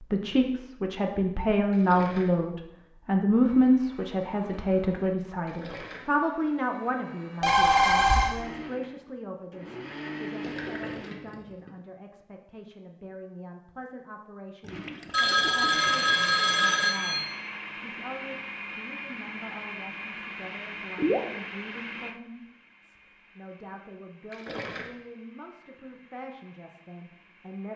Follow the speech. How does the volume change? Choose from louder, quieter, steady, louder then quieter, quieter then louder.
quieter.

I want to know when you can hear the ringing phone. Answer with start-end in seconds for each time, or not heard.
7.4-8.3, 15.1-17.1.